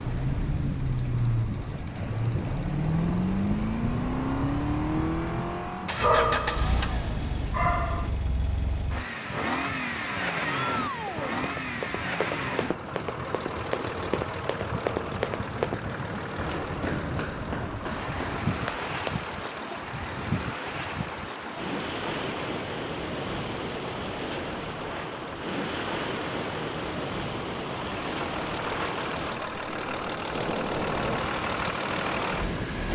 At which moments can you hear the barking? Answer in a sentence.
The barking can be heard from 6.0 to 8.1 s.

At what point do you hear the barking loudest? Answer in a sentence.
The loudest moment of the barking is at 6 seconds.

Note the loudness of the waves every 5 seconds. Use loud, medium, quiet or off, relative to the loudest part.
loud, medium, medium, loud, loud, loud, loud.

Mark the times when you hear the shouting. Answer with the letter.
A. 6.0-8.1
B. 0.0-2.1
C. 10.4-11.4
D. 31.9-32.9
C.